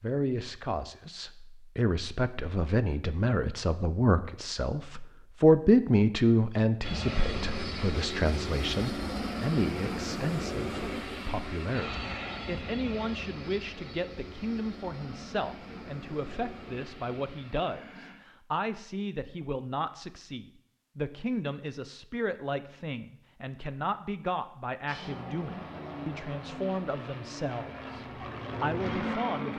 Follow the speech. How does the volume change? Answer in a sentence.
The loudness of the speech goes down.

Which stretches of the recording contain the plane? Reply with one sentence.
The plane can be heard from 6.8 to 18.1 s and from 24.9 to 29.5 s.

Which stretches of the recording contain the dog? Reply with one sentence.
You can't hear the dog here.